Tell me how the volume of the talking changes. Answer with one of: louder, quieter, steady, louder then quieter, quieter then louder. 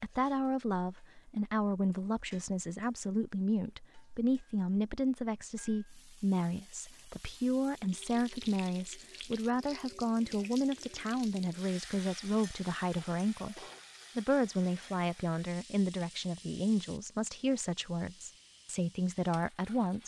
steady.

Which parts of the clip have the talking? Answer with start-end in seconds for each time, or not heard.
0.0-20.0.